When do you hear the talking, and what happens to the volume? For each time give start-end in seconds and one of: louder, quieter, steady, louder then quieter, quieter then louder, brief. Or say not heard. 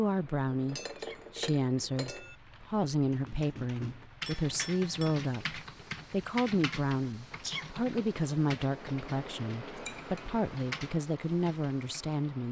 0.0-12.4 steady.